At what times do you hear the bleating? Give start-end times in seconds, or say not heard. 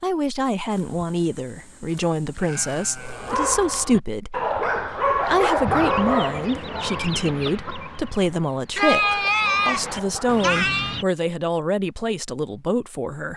0.7-3.5, 8.8-11.0.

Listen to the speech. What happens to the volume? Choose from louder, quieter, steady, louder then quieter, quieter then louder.
steady.